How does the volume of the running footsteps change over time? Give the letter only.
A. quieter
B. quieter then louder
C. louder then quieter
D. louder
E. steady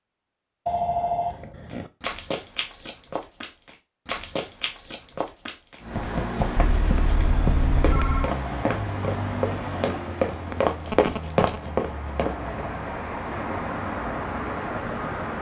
D.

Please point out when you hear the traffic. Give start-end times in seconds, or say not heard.
5.8-15.3.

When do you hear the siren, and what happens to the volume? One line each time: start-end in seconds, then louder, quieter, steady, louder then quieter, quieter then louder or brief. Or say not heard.
not heard.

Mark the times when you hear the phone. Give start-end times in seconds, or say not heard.
0.7-1.9, 6.7-8.3, 10.5-11.4.